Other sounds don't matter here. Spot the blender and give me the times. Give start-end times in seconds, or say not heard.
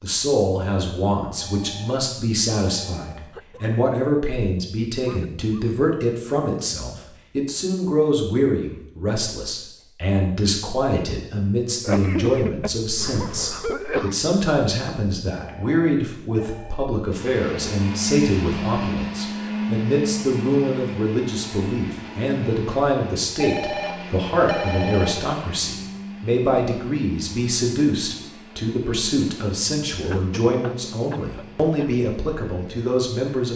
17.1-33.5.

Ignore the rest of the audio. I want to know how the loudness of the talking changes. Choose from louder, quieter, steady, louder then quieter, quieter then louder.
steady.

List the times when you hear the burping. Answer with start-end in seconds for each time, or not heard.
not heard.